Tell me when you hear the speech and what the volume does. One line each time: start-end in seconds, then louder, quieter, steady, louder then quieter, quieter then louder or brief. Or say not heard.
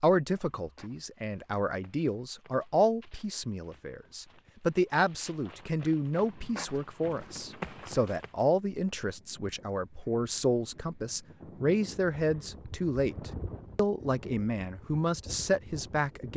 0.0-16.3 steady.